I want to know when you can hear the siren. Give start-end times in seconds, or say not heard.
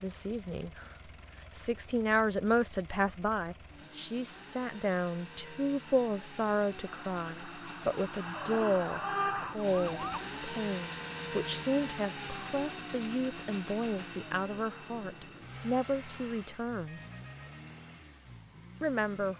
6.8-10.2.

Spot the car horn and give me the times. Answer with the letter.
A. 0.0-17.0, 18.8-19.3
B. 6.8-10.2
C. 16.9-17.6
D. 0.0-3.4
C.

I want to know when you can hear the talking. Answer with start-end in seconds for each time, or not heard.
0.0-17.0, 18.8-19.3.